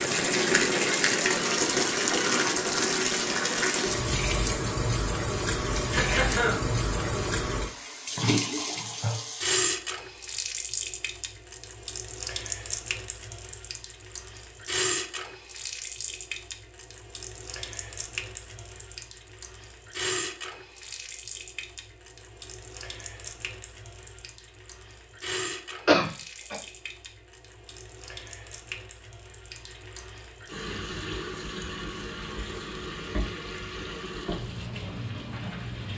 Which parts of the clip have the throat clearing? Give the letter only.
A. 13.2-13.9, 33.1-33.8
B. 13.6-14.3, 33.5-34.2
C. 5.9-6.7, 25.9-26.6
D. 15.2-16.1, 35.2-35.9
C.